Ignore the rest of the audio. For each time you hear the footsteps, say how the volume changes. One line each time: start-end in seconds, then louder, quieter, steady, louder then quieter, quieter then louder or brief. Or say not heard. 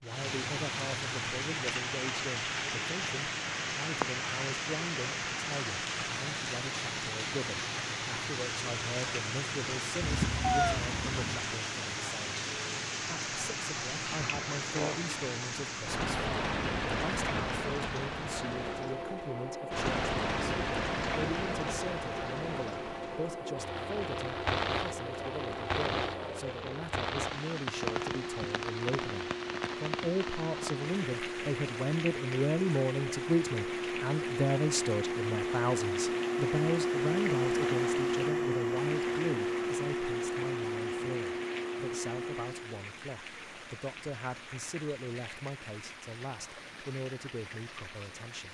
not heard.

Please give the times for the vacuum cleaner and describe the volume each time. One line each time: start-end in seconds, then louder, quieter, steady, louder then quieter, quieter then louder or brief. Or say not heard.
18.4-42.9 louder.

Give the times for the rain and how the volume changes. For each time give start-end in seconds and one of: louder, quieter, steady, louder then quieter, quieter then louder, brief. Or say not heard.
0.0-48.4 quieter.